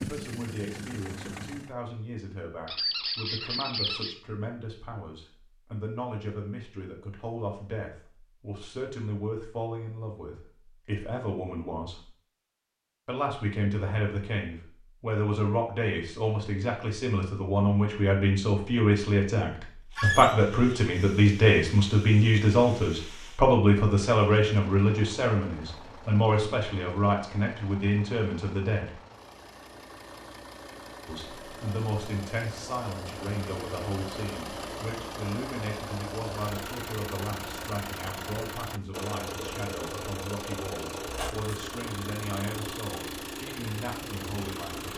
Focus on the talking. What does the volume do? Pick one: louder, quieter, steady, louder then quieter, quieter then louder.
louder then quieter.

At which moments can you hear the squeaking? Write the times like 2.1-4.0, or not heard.
2.6-4.2, 19.9-20.4, 41.0-41.5.